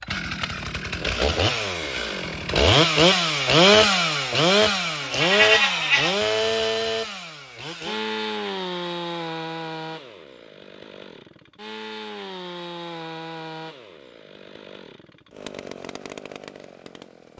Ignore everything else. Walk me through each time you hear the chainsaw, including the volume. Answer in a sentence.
You can hear the chainsaw from 0.0 to 17.3 s, getting quieter.